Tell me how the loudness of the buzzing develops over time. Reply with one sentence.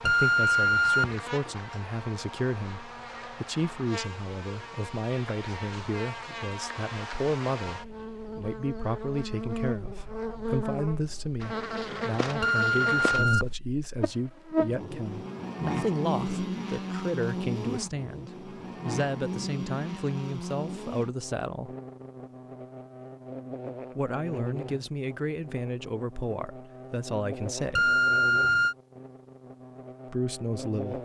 The loudness of the buzzing goes up, then down.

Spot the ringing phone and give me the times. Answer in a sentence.
You can hear the ringing phone from 0.1 to 1.1 s, from 12.4 to 13.6 s and from 27.8 to 28.8 s.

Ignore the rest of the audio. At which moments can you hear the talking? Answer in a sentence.
The talking can be heard from 0.0 to 21.7 s, from 23.9 to 28.0 s and from 30.1 to 31.0 s.